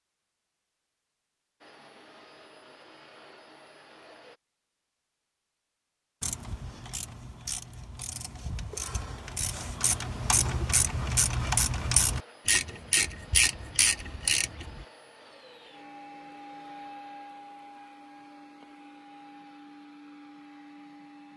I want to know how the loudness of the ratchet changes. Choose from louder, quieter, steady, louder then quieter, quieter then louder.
louder.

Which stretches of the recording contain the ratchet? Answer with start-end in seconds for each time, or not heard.
6.2-14.8.